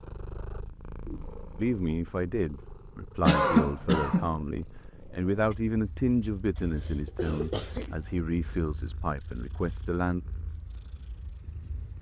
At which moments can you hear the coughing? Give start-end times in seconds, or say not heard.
3.2-4.3, 6.5-8.2.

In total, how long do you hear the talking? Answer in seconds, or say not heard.
9 s.